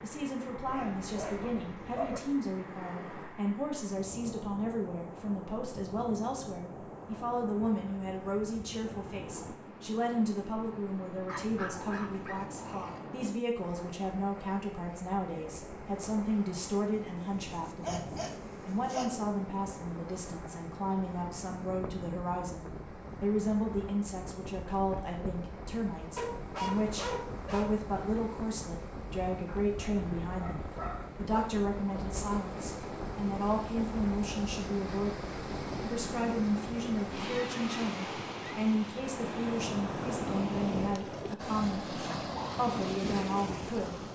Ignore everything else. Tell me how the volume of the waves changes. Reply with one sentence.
The loudness of the waves goes up.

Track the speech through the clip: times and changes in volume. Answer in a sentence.
You can hear the speech from 0.0 to 44.0 s, at a steady volume.